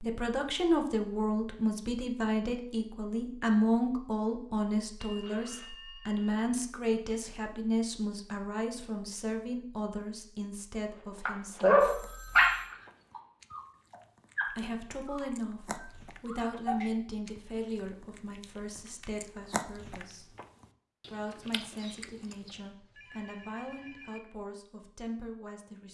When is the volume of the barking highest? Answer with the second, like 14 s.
12 s.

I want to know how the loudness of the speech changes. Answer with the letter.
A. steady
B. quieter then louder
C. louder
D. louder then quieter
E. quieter
E.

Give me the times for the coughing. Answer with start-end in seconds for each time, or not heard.
not heard.